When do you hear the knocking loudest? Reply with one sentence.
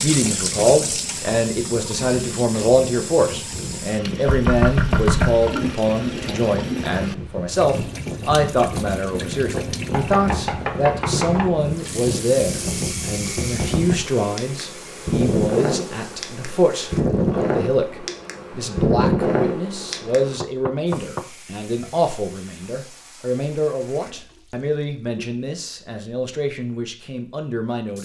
The volume of the knocking peaks at 5 seconds.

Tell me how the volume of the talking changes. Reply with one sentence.
The volume of the talking goes down.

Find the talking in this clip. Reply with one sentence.
The talking can be heard from 0.0 to 28.0 s.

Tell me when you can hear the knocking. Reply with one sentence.
The knocking can be heard from 4.2 to 5.5 s, from 9.9 to 11.5 s and from 20.4 to 21.9 s.